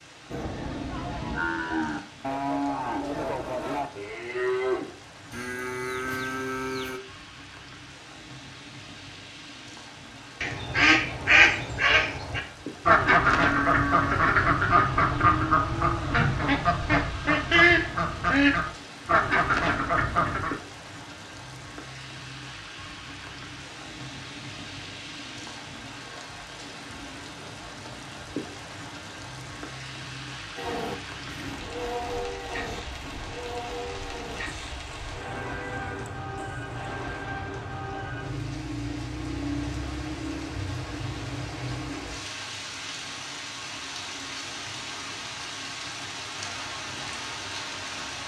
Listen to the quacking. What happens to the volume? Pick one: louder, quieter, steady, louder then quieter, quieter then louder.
steady.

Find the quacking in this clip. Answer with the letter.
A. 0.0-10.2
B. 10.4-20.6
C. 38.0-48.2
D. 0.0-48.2
B.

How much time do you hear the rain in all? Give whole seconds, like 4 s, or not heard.
48 s.